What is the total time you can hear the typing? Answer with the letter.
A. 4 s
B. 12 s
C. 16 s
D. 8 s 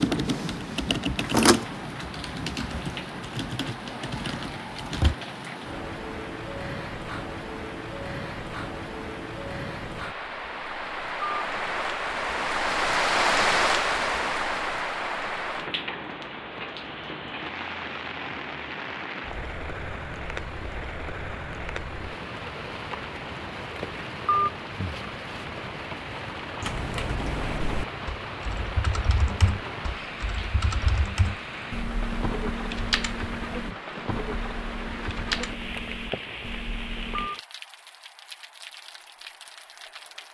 C.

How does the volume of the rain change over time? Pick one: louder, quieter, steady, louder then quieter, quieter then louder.
louder then quieter.